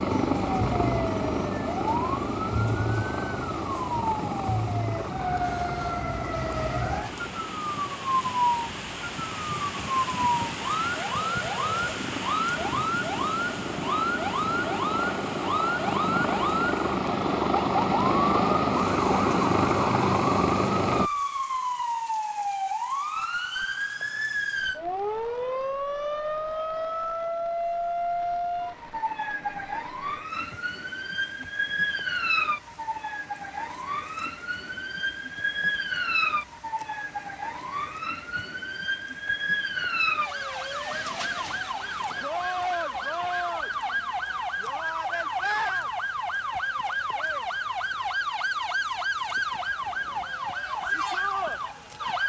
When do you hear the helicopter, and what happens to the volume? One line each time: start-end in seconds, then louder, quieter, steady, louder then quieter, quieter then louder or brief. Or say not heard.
0.0-21.1 quieter then louder.